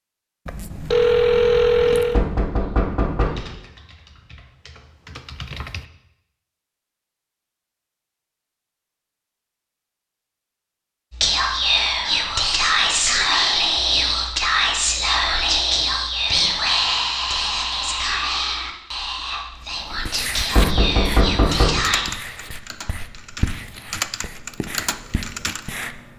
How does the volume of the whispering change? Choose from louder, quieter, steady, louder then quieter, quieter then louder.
quieter.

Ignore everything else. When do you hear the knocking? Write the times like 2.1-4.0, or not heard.
2.1-3.5, 20.5-21.9.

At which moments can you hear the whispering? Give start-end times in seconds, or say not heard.
11.1-22.1.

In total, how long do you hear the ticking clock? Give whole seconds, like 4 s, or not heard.
not heard.